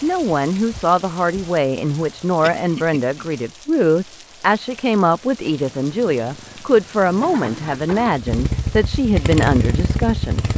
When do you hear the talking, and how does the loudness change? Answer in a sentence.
You can hear the talking from 0.0 to 10.4 s, at a steady volume.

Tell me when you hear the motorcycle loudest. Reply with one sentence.
The loudest moment of the motorcycle is at 10 seconds.